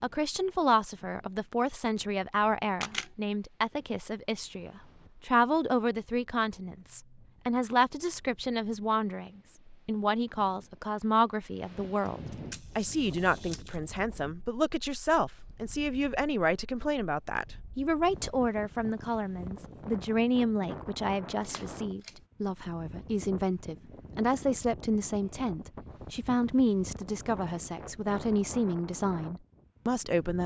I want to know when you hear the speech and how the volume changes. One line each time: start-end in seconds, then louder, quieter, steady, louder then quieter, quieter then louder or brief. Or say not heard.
0.0-30.4 steady.